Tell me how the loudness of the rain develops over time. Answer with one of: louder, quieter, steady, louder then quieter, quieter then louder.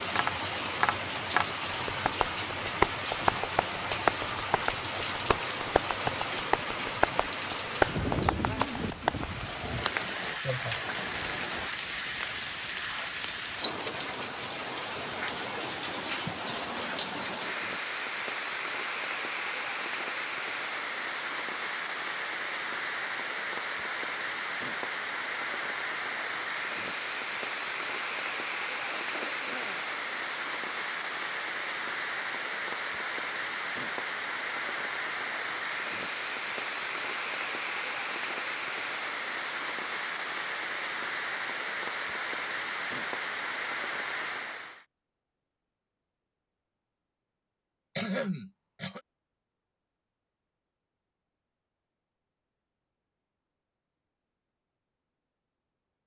steady.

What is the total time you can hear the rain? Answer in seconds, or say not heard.
45 s.